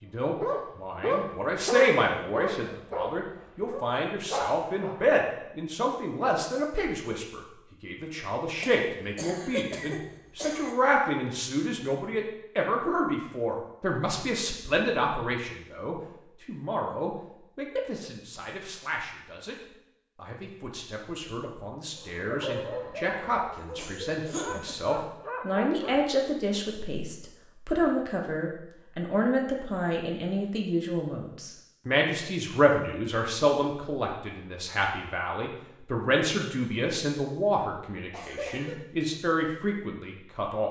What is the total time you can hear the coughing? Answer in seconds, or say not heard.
4 s.